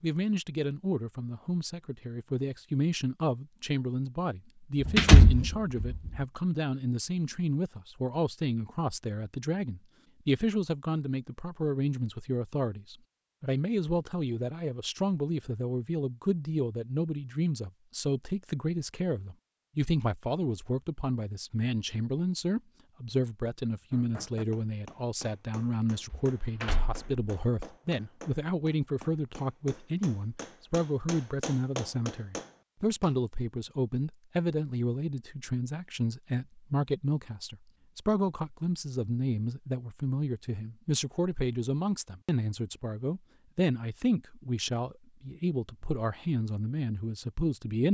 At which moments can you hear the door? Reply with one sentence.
You can hear the door from 4.8 to 6.1 s and from 26.1 to 27.3 s.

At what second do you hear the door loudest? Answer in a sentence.
The volume of the door peaks at 5 seconds.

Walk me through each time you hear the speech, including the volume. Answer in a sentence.
You can hear the speech from 0.0 to 47.8 s, at a steady volume.